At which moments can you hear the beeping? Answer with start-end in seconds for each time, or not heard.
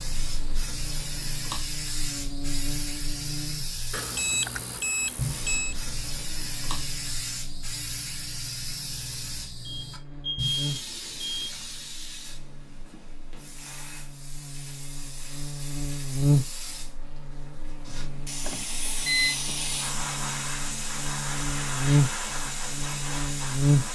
3.9-5.8, 9.7-11.5, 17.9-19.4.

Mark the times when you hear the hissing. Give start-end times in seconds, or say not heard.
0.0-23.9.